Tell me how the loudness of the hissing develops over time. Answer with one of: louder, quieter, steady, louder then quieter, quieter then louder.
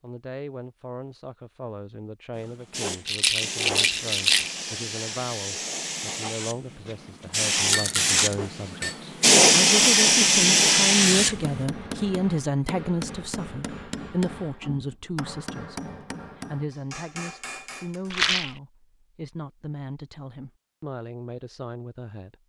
louder.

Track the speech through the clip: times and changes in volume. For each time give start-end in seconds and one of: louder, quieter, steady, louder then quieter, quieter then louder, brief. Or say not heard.
0.0-22.4 louder then quieter.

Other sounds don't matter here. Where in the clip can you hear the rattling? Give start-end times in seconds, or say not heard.
3.0-4.5, 7.5-8.2, 18.1-18.6.